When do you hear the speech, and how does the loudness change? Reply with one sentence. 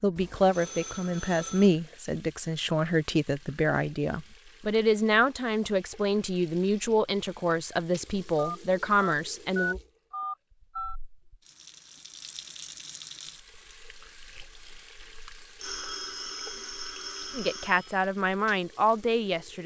You can hear the speech from 0.0 to 9.8 s, at a steady volume; and briefly from 17.4 to 19.6 s.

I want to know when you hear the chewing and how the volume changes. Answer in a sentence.
The chewing can't be heard in this clip.